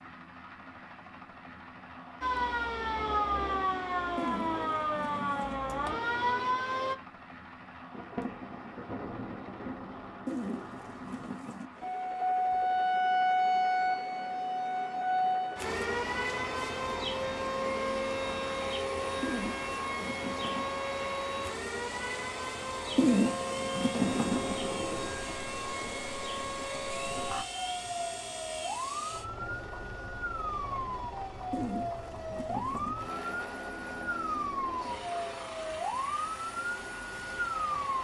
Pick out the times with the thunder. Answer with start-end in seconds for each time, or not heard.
7.9-11.3, 24.0-27.4.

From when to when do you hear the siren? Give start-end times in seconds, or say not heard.
2.2-7.0, 11.8-38.0.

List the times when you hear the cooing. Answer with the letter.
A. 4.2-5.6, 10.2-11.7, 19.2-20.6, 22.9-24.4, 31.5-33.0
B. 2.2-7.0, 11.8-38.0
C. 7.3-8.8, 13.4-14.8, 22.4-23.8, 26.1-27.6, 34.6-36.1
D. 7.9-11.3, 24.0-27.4
A.